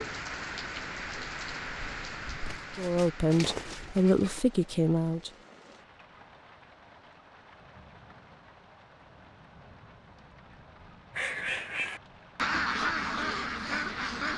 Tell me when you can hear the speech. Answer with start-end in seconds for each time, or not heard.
2.8-5.3.